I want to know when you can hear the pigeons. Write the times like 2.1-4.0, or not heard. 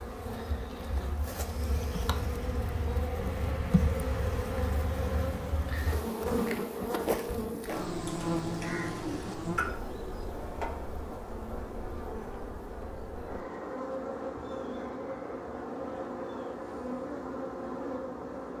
8.1-9.7.